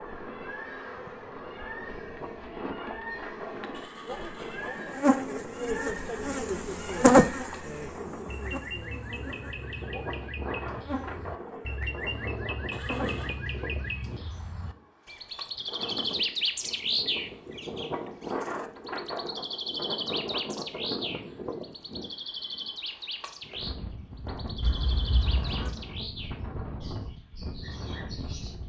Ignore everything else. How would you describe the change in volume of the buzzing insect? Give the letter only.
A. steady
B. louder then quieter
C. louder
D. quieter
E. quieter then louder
B.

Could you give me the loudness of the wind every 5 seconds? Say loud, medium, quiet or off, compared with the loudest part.
medium, medium, loud, loud, loud, loud.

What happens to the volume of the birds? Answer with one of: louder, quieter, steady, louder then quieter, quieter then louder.
louder then quieter.